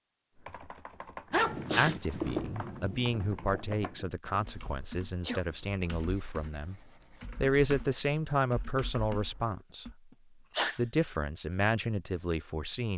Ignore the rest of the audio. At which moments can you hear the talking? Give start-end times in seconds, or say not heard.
1.8-6.8, 7.4-9.8, 10.8-12.9.